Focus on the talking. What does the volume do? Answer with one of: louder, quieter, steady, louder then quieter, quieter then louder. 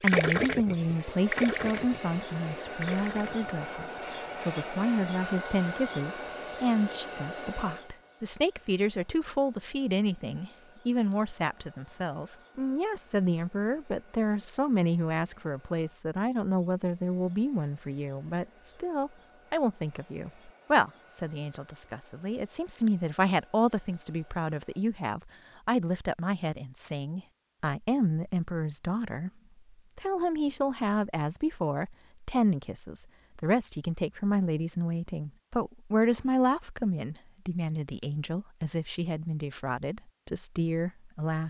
steady.